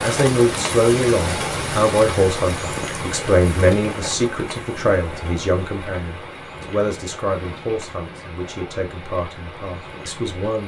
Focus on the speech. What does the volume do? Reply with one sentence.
The volume of the speech goes down.